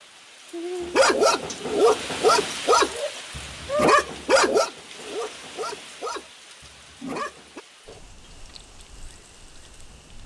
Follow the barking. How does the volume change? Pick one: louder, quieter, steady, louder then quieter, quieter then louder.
quieter.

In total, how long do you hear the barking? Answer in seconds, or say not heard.
7 s.